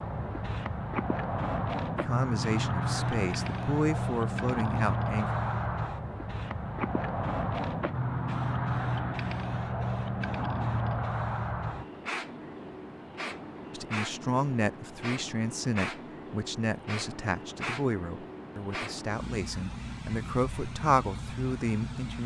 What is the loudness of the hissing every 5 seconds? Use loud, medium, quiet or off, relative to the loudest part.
loud, loud, loud, medium, medium.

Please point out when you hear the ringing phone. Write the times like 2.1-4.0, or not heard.
not heard.